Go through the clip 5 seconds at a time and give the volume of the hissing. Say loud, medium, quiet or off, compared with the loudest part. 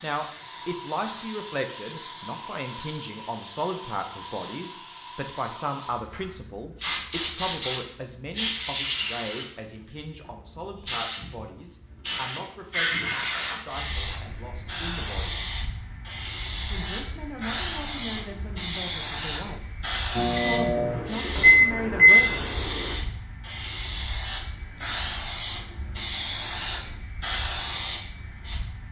medium, loud, loud, loud, loud, loud.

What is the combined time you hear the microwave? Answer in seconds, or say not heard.
3 s.